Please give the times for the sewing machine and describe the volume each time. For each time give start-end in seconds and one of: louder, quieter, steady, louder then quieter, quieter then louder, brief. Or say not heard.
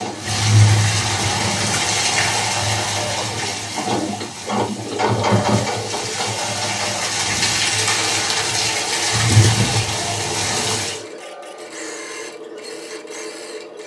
0.0-13.8 louder then quieter.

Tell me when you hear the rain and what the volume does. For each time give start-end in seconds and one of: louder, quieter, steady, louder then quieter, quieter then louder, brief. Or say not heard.
0.0-11.1 quieter then louder.